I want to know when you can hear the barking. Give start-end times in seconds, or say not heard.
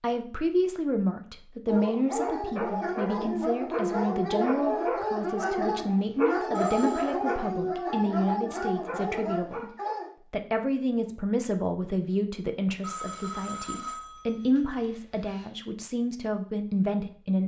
1.6-10.1.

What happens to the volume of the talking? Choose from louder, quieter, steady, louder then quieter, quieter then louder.
steady.